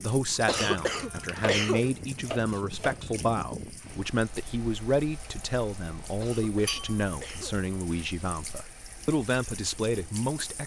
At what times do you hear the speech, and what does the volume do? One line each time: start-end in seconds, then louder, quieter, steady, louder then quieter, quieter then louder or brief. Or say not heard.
0.0-10.6 steady.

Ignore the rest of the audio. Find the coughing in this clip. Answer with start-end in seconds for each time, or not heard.
0.5-1.9, 6.2-7.6.